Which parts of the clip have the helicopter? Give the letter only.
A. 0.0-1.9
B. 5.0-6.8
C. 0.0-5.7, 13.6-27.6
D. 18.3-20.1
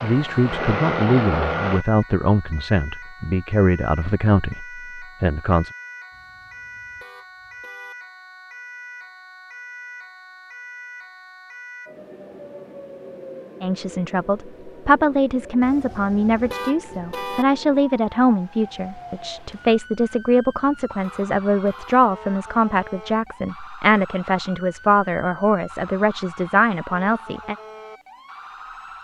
A.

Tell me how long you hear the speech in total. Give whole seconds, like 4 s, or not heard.
20 s.